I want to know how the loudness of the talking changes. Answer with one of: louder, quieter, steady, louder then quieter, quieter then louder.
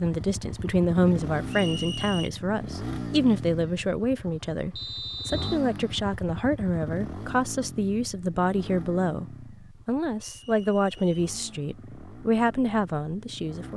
steady.